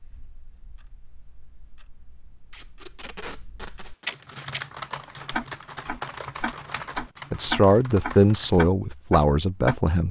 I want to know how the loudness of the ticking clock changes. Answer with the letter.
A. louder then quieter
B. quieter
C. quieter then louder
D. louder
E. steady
D.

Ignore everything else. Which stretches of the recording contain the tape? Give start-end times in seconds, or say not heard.
2.5-4.5.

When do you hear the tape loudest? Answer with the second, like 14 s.
3 s.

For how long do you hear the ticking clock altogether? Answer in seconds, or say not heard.
9 s.